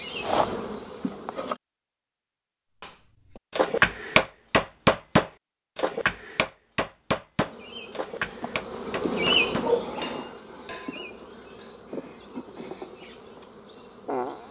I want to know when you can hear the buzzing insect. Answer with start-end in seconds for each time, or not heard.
0.0-1.6, 7.5-14.4.